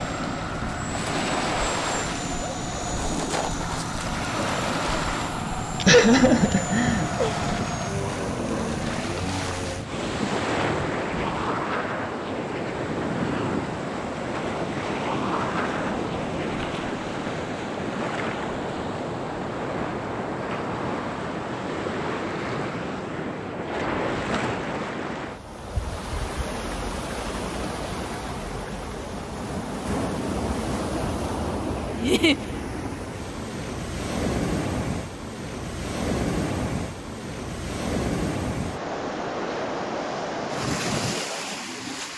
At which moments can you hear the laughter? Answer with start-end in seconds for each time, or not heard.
5.8-7.3, 31.9-32.4.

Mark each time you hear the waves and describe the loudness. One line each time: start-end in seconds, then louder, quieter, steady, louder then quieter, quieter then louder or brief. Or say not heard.
0.0-42.1 steady.